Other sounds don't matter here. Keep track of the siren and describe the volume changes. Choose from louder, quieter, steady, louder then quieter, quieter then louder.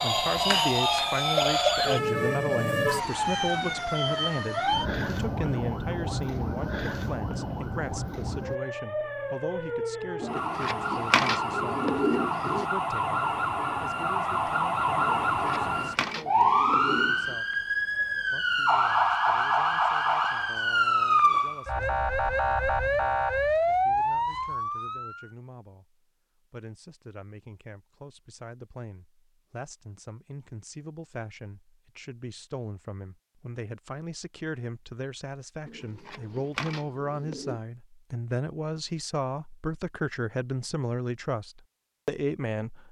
quieter then louder.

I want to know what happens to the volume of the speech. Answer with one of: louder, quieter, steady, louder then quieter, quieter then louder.
quieter then louder.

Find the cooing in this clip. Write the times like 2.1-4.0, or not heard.
10.2-12.7, 15.2-17.4, 35.6-37.6.